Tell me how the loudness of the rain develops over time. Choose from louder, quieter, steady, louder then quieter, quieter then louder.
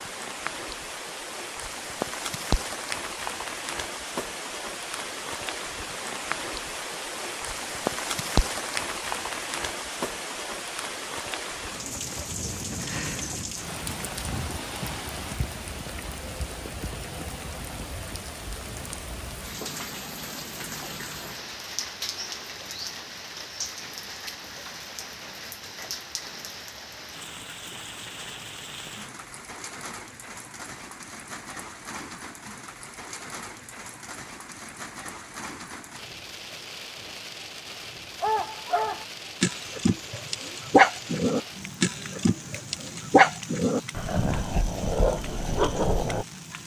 quieter.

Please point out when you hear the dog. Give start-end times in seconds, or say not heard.
38.2-46.2.